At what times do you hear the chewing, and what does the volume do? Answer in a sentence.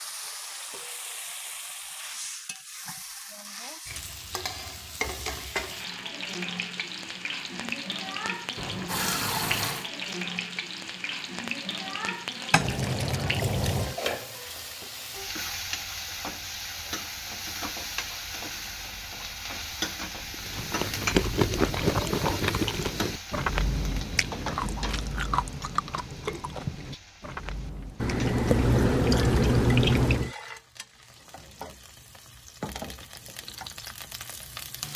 The chewing can be heard from 20.3 to 28.2 s, getting quieter.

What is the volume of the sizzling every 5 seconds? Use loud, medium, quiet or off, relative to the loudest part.
medium, loud, loud, loud, loud, medium, medium.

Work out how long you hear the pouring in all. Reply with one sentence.
The pouring can be heard for 5 seconds in total.